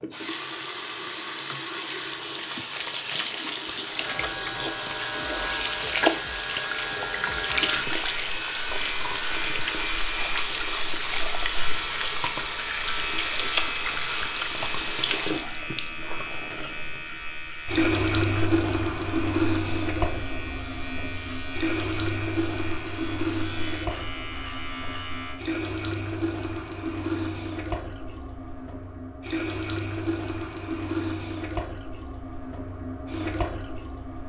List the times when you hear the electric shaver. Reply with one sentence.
The electric shaver can be heard from 4.0 to 25.4 s.